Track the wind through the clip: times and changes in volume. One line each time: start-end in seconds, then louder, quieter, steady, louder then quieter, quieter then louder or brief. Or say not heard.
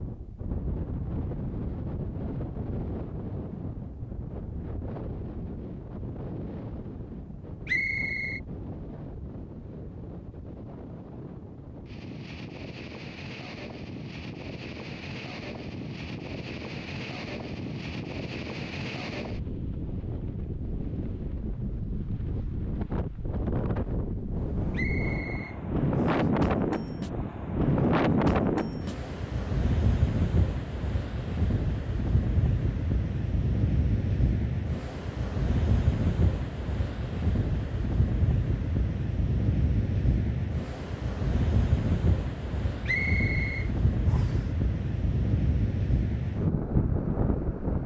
0.0-47.8 louder.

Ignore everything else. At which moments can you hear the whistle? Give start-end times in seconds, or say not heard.
7.7-8.4, 24.7-26.2, 42.9-44.5.